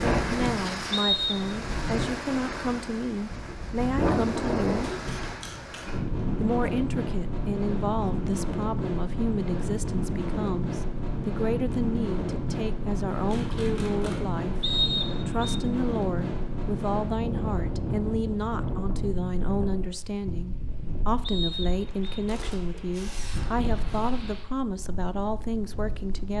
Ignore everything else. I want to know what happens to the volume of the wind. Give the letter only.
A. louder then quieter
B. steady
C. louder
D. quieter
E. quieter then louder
D.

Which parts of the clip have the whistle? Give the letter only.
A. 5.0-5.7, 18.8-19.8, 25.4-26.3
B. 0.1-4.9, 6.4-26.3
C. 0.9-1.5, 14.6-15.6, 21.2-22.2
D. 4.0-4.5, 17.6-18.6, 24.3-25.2
C.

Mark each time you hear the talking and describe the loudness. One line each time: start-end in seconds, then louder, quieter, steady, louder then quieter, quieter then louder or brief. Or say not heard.
0.1-4.9 steady
6.4-26.3 steady.